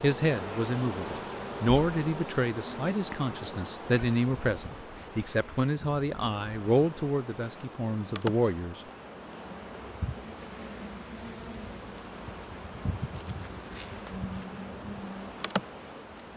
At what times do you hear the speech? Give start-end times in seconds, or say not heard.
0.0-8.8.